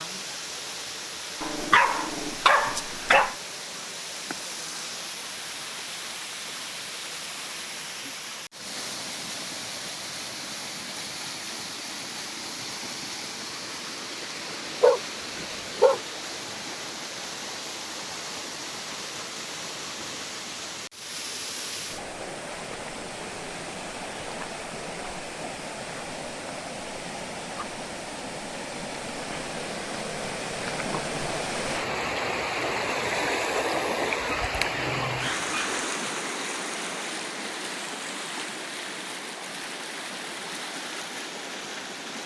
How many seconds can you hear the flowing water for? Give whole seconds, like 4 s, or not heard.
42 s.